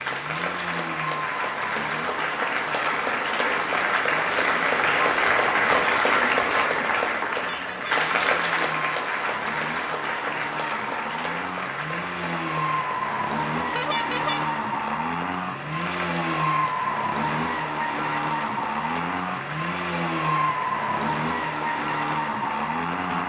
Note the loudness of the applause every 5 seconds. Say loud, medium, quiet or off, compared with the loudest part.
loud, loud, medium, quiet, quiet.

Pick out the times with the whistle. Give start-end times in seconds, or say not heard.
not heard.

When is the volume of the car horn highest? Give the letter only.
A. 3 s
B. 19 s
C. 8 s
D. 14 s
D.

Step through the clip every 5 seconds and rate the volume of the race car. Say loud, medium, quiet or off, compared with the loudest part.
medium, medium, loud, loud, loud.